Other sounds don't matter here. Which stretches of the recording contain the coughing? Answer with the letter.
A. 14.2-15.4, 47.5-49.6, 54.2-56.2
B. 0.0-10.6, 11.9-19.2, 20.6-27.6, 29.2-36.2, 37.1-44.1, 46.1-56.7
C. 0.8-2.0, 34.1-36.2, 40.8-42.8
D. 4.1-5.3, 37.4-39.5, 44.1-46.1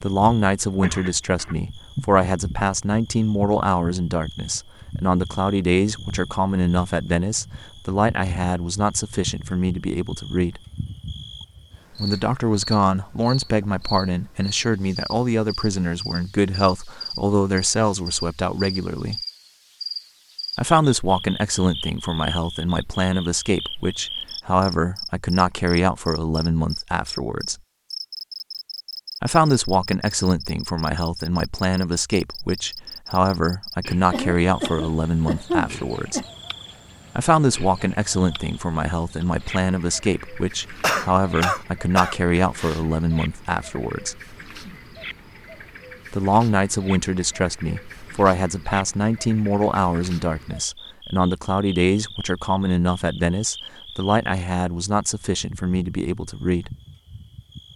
C.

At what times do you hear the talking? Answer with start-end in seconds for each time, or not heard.
0.0-10.6, 11.9-19.2, 20.6-27.6, 29.2-36.2, 37.1-44.1, 46.1-56.7.